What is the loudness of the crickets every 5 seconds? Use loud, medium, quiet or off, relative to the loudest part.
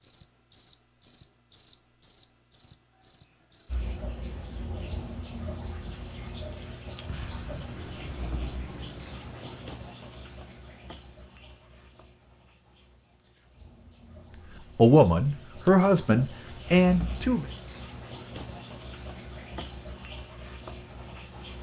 loud, loud, medium, loud, loud.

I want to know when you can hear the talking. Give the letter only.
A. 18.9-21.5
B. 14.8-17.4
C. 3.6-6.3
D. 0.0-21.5
B.